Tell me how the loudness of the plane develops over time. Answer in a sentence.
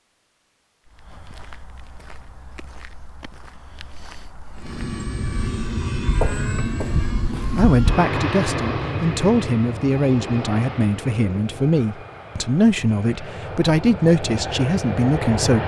The volume of the plane goes down, then up.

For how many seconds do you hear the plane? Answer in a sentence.
You can hear the plane for 11 seconds altogether.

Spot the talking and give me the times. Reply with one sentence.
The talking can be heard from 7.5 to 15.6 s.